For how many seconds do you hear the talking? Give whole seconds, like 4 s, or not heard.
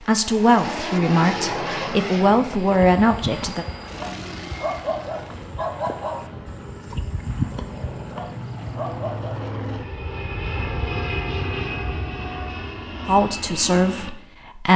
5 s.